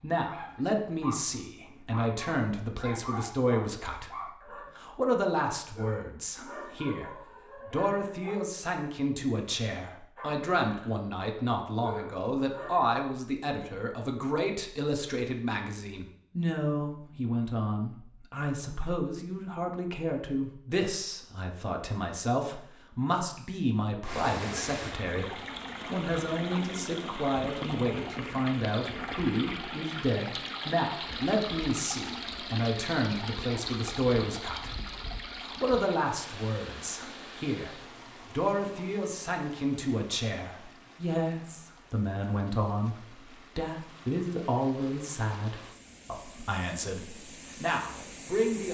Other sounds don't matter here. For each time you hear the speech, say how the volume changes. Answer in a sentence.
The speech can be heard from 0.0 to 48.6 s, at a steady volume.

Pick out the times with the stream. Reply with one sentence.
The stream can be heard from 24.0 to 48.6 s.